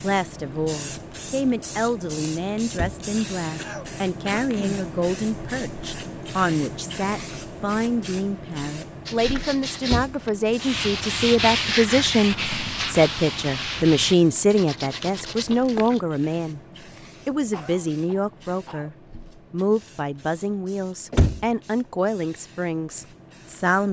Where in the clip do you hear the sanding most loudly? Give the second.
12 s.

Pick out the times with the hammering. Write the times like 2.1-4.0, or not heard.
not heard.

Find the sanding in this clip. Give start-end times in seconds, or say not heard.
9.1-16.0.